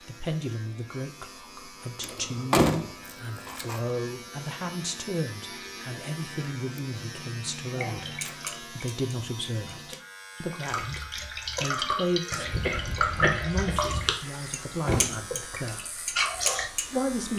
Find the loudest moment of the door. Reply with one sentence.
The volume of the door peaks at 3 seconds.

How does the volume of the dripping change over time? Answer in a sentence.
The loudness of the dripping goes up.